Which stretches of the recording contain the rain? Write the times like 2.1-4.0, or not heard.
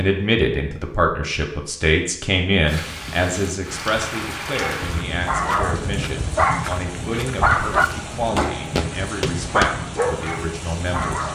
2.6-11.2.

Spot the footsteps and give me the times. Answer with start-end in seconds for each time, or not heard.
4.7-9.7.